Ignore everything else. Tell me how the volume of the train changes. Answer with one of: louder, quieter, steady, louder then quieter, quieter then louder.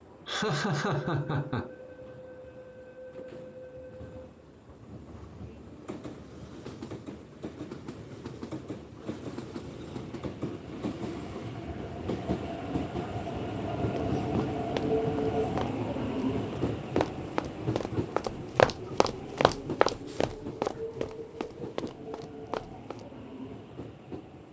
louder then quieter.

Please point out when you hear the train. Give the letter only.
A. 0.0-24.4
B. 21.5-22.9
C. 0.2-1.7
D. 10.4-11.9
A.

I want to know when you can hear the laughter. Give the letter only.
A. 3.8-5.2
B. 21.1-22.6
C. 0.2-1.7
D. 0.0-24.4
C.